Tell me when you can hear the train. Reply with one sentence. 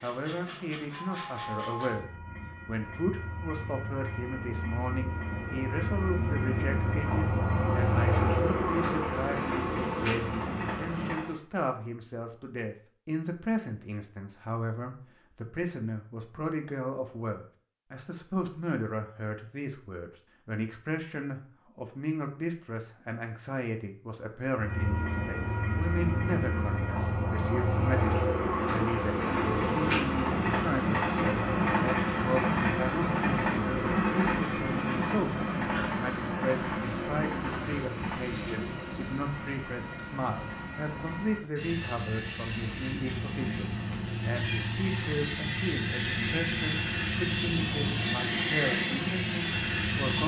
The train can be heard from 0.0 to 11.4 s and from 24.6 to 50.2 s.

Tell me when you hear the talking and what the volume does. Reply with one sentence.
The talking can be heard from 0.0 to 50.2 s, at a steady volume.